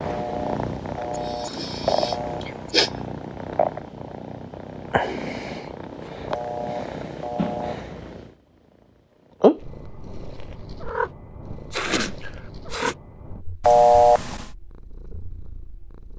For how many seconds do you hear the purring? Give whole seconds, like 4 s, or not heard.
15 s.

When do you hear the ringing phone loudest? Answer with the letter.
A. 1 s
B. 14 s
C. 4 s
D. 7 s
B.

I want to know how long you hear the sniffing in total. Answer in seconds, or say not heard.
3 s.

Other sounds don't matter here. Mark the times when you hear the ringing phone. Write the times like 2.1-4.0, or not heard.
0.0-2.5, 6.3-7.8, 13.6-14.4.